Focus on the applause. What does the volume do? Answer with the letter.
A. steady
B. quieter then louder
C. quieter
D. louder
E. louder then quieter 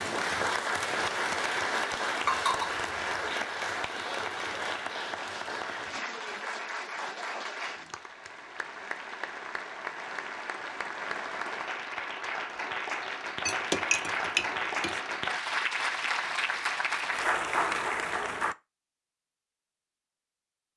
B.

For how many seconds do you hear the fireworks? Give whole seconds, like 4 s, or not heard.
not heard.